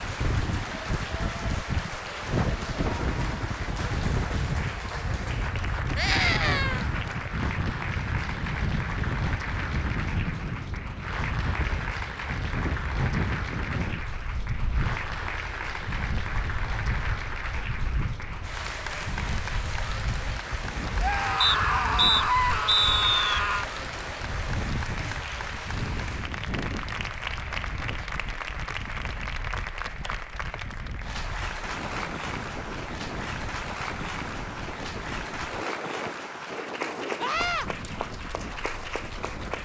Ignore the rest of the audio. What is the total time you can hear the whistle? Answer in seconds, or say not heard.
2 s.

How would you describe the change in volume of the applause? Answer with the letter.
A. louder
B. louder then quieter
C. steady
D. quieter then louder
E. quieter
C.